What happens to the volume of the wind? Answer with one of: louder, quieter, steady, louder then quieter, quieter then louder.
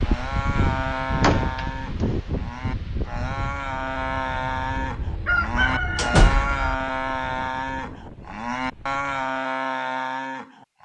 quieter.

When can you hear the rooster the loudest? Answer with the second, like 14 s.
5 s.